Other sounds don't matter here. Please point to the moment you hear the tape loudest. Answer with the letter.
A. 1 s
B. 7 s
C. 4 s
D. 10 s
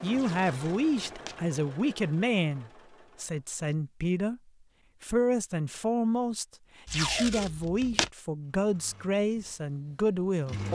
B.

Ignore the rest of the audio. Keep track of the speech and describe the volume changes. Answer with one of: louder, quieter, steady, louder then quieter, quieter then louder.
steady.